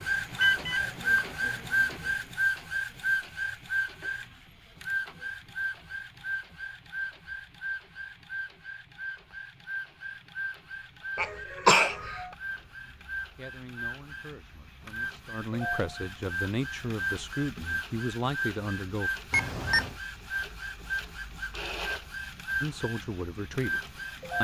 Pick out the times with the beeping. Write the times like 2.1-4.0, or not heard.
0.3-1.6, 19.3-19.9.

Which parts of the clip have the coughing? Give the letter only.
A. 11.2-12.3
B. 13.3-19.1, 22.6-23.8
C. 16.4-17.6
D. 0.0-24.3
A.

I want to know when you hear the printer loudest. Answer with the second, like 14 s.
1 s.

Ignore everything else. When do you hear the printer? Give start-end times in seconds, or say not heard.
0.0-24.3.